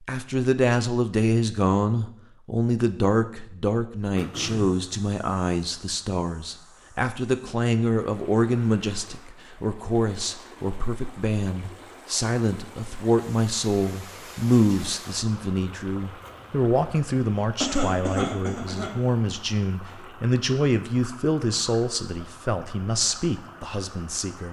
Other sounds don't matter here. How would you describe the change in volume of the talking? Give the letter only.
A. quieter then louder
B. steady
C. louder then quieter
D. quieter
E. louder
B.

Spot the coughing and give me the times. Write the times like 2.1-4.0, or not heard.
4.2-4.8, 17.6-18.9.